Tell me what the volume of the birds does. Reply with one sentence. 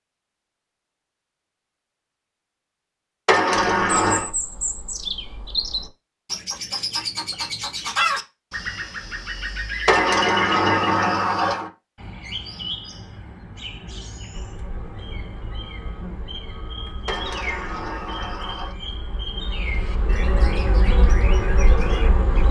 The volume of the birds goes down.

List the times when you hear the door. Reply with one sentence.
The door can be heard from 3.2 to 4.3 s, from 9.8 to 11.7 s and from 17.1 to 18.8 s.